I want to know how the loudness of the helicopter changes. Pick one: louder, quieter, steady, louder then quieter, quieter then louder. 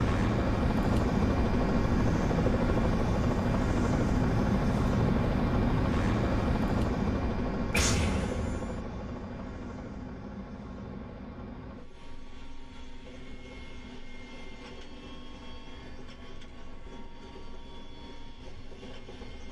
quieter.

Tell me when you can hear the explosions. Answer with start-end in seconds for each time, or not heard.
7.7-8.8.